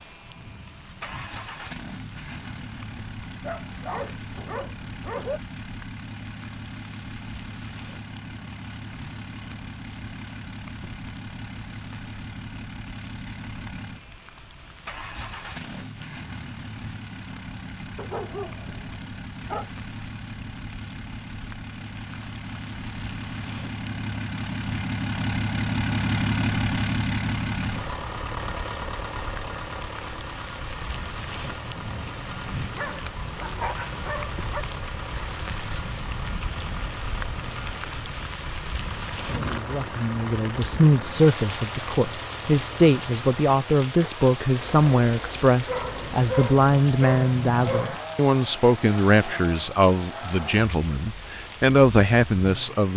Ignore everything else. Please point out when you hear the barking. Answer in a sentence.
You can hear the barking from 3.4 to 5.4 s, from 17.9 to 19.7 s, from 32.8 to 34.6 s and from 45.6 to 48.0 s.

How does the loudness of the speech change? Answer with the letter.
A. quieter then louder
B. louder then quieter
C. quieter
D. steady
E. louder
D.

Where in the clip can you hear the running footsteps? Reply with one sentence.
You can't hear the running footsteps here.